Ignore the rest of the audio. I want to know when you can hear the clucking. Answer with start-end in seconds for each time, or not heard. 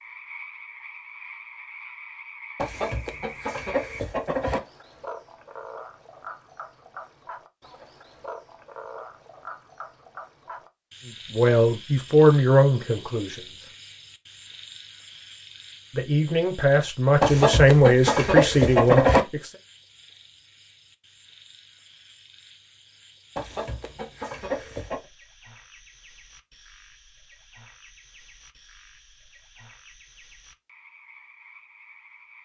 2.5-4.6, 17.2-19.2, 23.4-25.1.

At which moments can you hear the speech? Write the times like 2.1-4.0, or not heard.
11.3-13.7, 15.9-19.5.